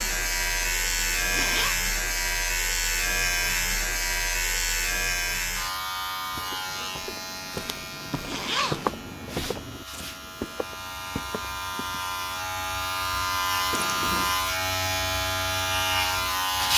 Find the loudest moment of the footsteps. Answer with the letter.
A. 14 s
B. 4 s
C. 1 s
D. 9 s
D.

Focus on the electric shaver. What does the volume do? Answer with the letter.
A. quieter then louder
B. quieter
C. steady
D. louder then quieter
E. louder
A.